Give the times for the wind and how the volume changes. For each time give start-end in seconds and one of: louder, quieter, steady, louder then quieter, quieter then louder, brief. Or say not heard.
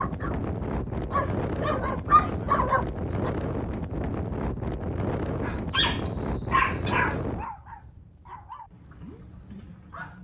0.0-9.9 quieter.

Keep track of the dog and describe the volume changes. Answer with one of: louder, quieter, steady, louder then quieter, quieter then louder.
louder then quieter.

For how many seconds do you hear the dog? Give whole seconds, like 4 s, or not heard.
8 s.